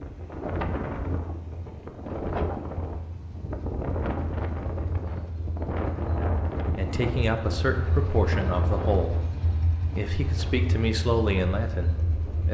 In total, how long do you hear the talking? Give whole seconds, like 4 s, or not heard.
5 s.